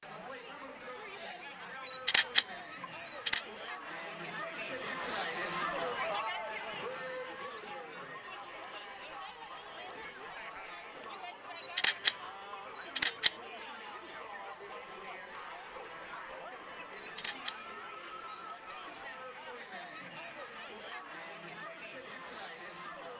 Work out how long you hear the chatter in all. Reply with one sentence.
The chatter can be heard for 23 seconds in total.